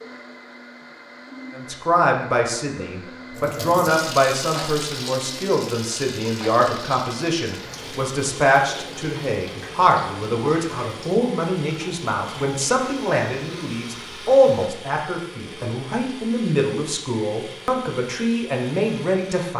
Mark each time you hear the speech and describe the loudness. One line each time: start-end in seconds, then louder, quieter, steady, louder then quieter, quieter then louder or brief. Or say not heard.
1.6-19.5 steady.